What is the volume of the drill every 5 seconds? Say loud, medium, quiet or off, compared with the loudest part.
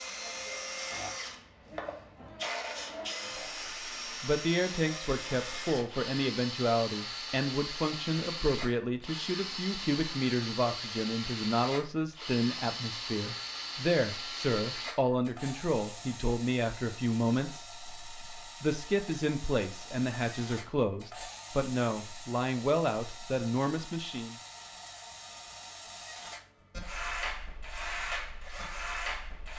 loud, loud, loud, medium, medium, loud.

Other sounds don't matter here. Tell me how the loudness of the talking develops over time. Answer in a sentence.
The loudness of the talking stays about the same.